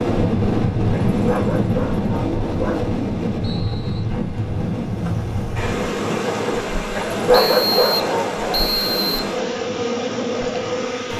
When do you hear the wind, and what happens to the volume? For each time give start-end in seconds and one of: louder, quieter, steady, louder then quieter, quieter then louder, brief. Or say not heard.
0.0-11.1 quieter.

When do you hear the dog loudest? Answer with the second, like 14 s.
7 s.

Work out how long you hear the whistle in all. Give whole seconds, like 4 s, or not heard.
3 s.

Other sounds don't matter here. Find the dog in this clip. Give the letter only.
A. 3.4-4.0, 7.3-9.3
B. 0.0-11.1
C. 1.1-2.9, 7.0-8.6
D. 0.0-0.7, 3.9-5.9
C.